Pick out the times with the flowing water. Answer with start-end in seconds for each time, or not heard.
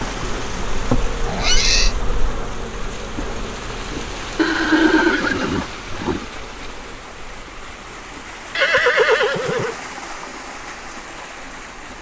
0.0-11.9.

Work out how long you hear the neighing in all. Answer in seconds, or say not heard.
4 s.